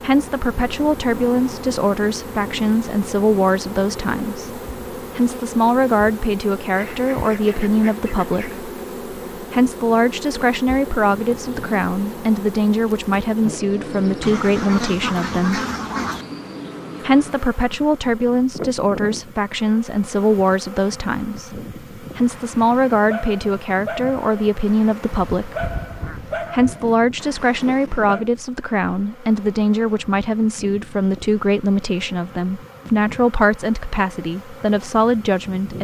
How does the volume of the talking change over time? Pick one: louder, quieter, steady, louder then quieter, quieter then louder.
steady.